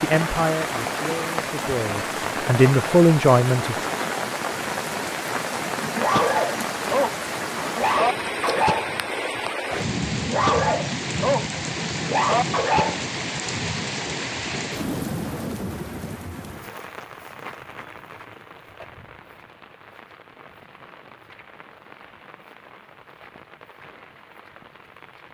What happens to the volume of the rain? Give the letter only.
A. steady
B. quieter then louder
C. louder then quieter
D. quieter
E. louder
D.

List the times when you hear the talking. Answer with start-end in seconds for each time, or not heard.
0.0-3.9.